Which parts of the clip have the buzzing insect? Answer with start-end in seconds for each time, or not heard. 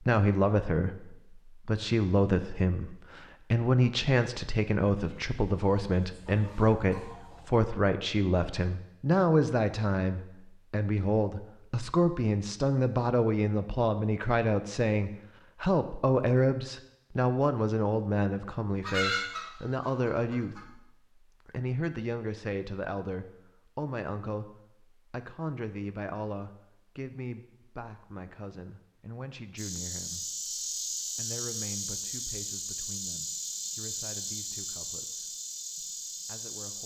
29.6-36.8.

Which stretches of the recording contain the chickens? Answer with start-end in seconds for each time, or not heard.
5.0-7.6, 18.8-20.6.